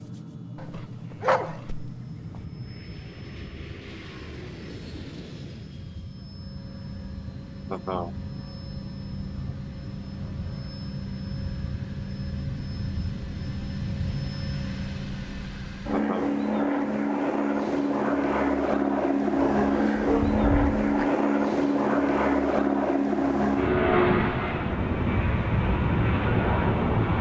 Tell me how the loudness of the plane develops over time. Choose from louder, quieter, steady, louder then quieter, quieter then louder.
louder.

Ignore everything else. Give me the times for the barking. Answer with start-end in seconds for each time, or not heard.
0.6-1.9, 19.4-21.1.